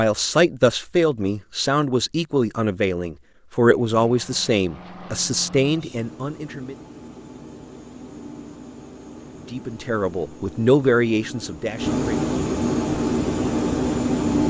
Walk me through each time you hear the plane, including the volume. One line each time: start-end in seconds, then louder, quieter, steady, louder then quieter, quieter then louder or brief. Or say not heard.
3.8-14.4 louder.